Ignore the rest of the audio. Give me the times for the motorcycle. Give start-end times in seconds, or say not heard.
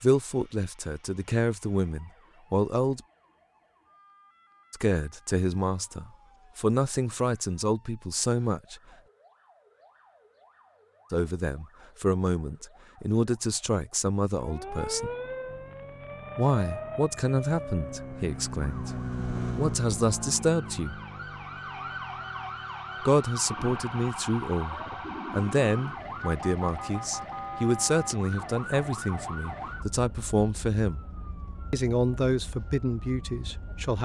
15.4-25.2.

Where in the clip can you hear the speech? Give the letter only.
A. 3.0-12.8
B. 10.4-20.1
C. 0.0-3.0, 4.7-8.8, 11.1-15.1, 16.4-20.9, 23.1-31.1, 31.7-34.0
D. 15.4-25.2
C.